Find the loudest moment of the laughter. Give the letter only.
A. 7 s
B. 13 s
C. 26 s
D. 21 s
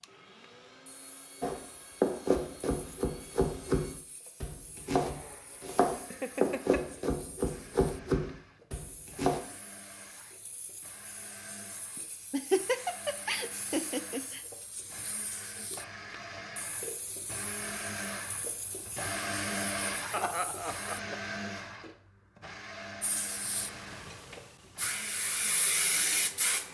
B.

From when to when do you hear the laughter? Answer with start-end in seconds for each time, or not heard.
6.1-6.8, 11.9-14.4, 20.1-21.2.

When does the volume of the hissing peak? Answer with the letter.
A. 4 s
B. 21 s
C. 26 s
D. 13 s
C.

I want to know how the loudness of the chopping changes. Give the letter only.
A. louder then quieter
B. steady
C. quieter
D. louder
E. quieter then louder
B.